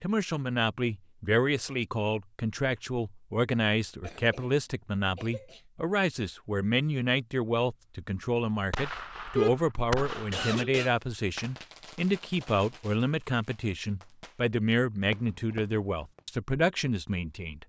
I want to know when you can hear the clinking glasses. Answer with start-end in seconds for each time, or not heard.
not heard.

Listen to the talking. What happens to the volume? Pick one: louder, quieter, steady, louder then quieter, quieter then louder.
steady.